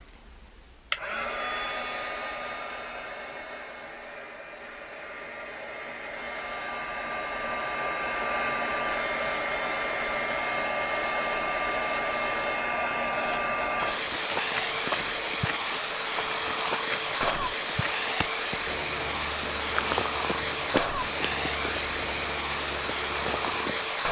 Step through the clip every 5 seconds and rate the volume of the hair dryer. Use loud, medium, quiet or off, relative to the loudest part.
medium, loud, loud, loud, loud.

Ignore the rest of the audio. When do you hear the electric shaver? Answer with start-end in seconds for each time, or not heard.
not heard.